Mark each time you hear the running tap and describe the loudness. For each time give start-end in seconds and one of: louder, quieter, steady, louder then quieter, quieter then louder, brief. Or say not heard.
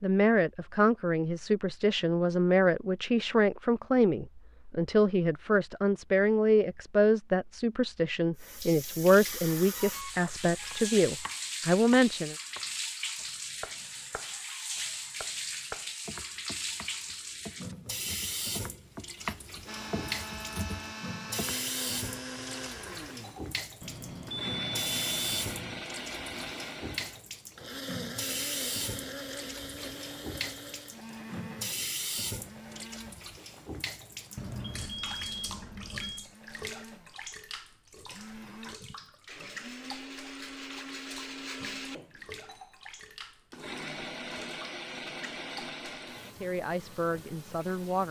8.3-48.0 quieter.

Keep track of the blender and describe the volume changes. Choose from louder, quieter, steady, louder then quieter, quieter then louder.
quieter then louder.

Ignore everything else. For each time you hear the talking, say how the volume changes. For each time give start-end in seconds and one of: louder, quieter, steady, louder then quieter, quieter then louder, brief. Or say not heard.
0.0-12.3 steady
46.4-48.0 brief.